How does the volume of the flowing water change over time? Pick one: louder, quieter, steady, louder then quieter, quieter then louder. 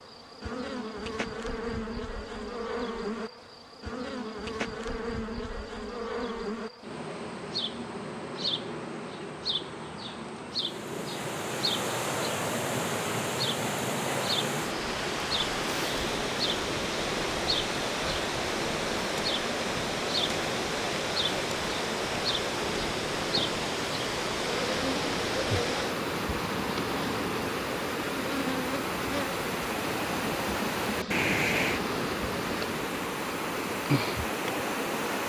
steady.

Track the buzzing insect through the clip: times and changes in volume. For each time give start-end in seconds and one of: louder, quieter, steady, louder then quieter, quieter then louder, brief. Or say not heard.
0.0-35.2 steady.